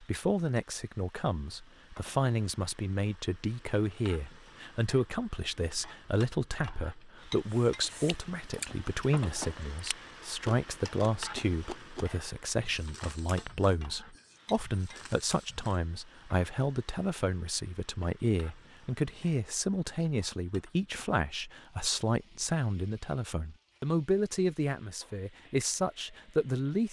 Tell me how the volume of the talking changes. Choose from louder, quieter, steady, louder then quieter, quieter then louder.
steady.